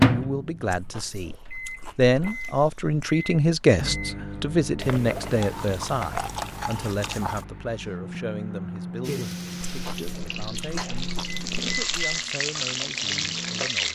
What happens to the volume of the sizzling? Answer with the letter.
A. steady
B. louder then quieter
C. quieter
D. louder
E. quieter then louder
D.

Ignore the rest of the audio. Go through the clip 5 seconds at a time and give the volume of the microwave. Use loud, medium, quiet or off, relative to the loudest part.
loud, medium, medium.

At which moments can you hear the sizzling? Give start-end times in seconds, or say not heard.
9.0-13.9.